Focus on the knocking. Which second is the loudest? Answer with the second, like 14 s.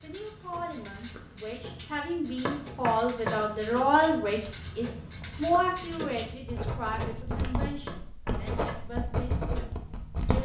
3 s.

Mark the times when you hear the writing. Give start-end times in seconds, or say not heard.
0.0-10.4.